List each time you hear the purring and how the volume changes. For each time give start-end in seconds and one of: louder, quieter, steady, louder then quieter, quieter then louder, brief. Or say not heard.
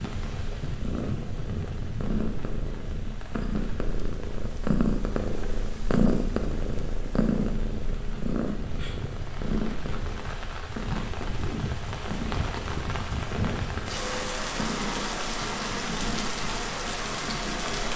0.0-17.9 louder then quieter.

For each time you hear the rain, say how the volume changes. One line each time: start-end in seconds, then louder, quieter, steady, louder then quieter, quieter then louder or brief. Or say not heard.
0.0-17.9 quieter then louder.